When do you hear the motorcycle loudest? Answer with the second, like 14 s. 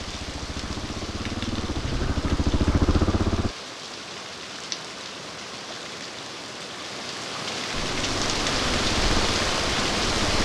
3 s.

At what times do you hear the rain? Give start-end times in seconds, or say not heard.
0.0-10.3.